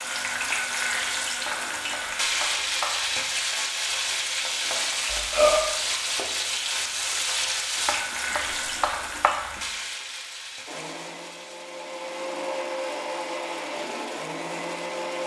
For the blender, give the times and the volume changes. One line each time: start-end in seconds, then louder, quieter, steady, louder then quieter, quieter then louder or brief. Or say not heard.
10.7-15.2 louder.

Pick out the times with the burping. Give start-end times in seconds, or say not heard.
5.0-5.8.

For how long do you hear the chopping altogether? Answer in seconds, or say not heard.
4 s.